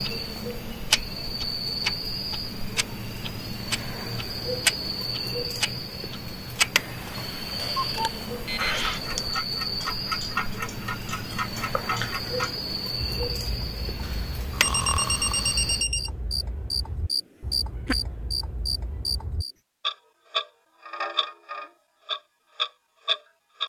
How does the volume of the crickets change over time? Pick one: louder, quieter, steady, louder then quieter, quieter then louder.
steady.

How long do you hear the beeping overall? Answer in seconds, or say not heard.
4 s.